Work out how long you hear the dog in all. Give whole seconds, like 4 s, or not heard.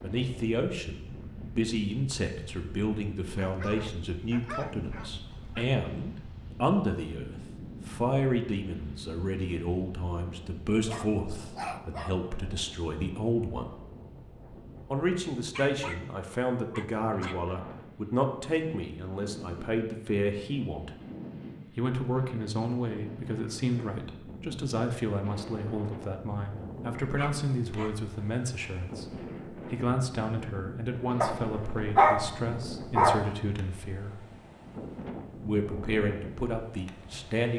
8 s.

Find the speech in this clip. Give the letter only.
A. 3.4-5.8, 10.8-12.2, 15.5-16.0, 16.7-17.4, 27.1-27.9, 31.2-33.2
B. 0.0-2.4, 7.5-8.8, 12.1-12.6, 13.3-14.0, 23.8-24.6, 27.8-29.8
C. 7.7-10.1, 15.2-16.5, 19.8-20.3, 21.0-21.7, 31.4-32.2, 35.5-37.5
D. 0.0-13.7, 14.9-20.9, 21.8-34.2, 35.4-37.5
D.